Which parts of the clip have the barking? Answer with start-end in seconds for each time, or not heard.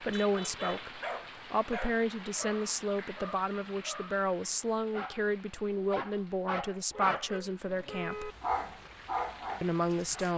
0.3-10.3.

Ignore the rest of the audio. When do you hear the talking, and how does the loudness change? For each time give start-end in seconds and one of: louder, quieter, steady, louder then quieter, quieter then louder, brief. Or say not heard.
0.0-8.3 steady
9.6-10.3 brief.